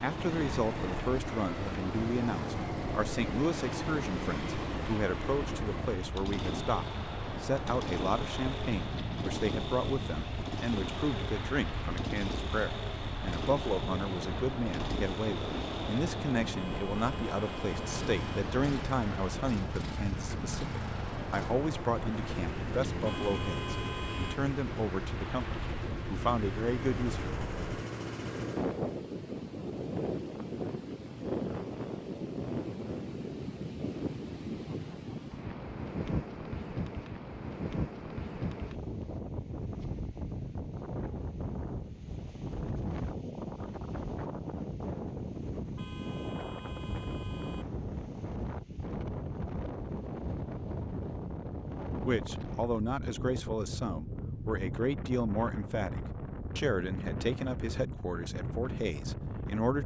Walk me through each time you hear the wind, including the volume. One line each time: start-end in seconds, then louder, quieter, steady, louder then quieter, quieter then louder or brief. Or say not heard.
0.0-59.8 steady.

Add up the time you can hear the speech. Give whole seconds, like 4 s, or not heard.
35 s.